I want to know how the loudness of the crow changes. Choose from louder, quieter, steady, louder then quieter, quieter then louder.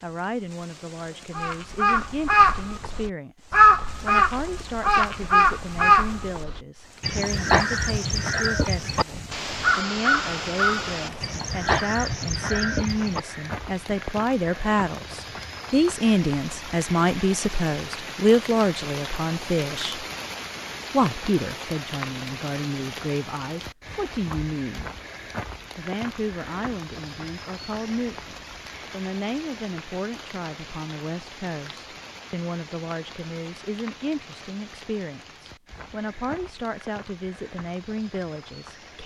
quieter.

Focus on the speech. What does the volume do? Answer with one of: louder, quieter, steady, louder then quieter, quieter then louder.
louder then quieter.